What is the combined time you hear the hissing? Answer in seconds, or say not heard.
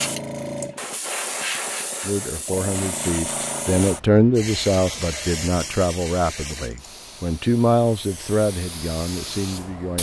10 s.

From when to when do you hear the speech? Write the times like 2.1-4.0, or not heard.
2.0-9.9.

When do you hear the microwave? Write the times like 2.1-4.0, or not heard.
not heard.